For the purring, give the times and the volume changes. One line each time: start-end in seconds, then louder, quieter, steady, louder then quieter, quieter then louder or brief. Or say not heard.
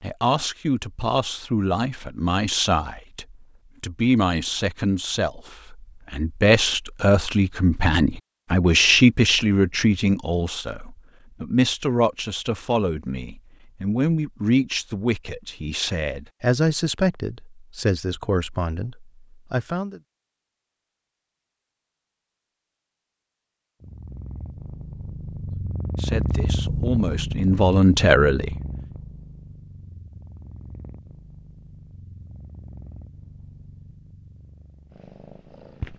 23.8-35.9 quieter.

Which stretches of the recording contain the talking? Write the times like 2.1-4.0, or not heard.
0.0-20.0, 25.9-28.6.